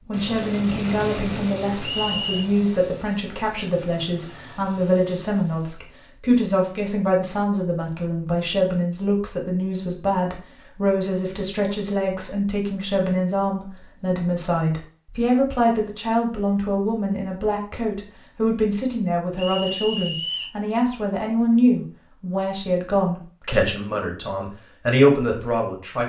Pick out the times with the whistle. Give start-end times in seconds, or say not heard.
1.8-2.5, 19.4-20.6.